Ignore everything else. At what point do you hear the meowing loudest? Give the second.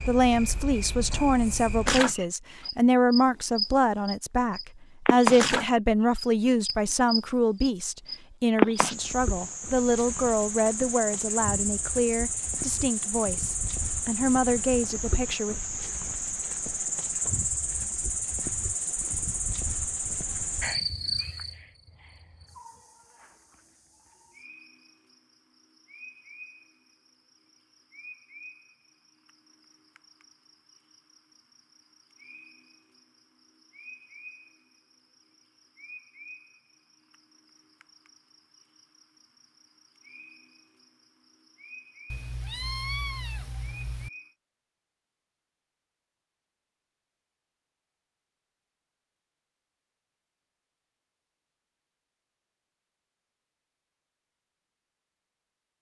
43 s.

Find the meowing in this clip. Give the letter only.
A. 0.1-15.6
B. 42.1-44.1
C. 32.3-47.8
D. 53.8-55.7
B.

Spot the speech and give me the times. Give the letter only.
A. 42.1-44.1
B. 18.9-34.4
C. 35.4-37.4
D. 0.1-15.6
D.